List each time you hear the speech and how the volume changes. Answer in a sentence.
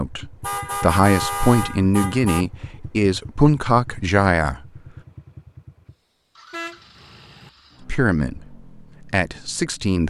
You can hear the speech from 0.0 to 4.7 s, at a steady volume; and briefly from 7.8 to 10.0 s.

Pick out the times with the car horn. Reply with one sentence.
The car horn can be heard from 0.4 to 2.5 s and from 6.5 to 7.5 s.